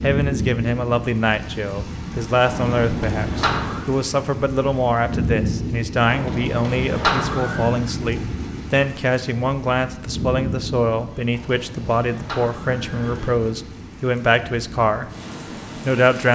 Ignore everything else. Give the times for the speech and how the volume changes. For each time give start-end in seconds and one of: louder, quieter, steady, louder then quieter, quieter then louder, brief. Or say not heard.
0.0-15.1 steady
15.8-16.3 brief.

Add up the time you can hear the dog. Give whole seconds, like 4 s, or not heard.
not heard.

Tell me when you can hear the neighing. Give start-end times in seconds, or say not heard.
2.5-3.9, 6.0-7.8, 11.3-13.3.